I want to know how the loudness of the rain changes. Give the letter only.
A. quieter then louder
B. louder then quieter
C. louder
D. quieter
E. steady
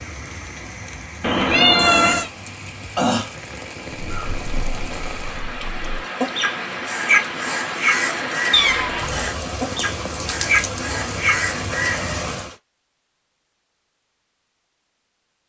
C.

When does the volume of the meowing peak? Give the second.
2 s.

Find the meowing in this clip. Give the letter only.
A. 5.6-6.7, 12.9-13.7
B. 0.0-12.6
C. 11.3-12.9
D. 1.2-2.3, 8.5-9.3
D.